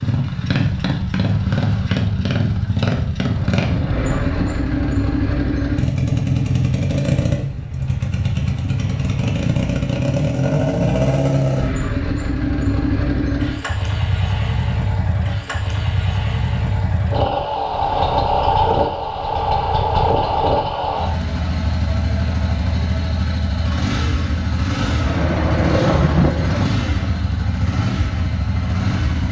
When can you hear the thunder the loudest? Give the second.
26 s.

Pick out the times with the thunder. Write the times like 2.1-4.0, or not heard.
3.2-4.9, 25.1-26.7.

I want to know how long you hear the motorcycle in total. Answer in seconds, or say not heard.
29 s.